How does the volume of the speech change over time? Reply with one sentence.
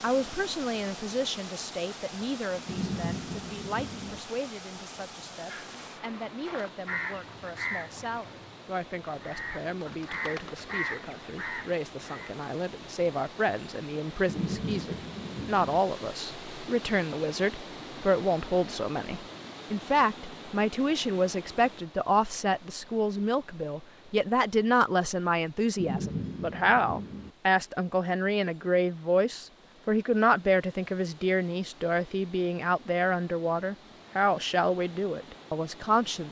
The volume of the speech goes up.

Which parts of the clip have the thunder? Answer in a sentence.
The thunder can be heard from 2.6 to 4.2 s, from 14.2 to 15.8 s and from 25.8 to 27.3 s.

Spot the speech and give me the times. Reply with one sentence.
The speech can be heard from 0.0 to 36.2 s.